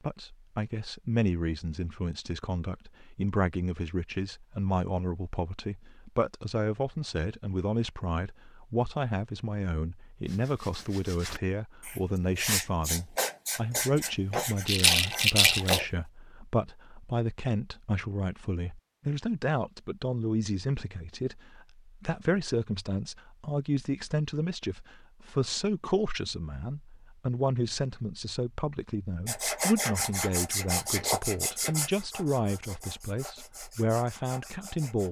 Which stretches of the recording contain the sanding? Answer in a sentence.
The sanding can be heard from 10.2 to 15.8 s and from 29.2 to 35.0 s.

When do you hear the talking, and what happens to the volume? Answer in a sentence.
You can hear the talking from 0.0 to 35.0 s, at a steady volume.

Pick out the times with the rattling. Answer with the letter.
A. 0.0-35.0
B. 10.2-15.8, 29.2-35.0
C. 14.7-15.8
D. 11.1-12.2
C.